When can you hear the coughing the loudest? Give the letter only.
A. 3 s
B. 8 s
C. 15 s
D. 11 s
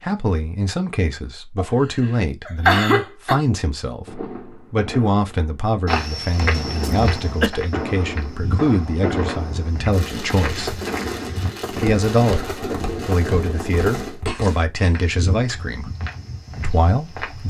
A.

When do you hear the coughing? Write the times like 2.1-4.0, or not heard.
2.5-3.4, 6.5-7.5, 14.2-14.9.